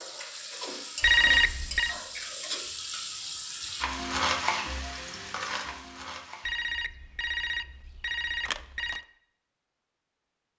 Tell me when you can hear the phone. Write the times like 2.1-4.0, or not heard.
1.0-1.9, 6.5-9.0.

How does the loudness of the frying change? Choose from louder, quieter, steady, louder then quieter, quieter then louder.
louder then quieter.